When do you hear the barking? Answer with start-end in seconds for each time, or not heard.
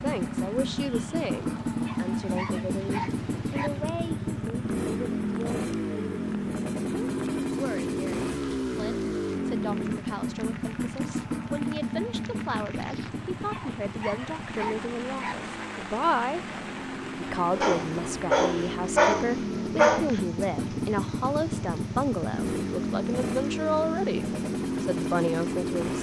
1.8-3.7, 13.4-15.3, 17.6-20.2.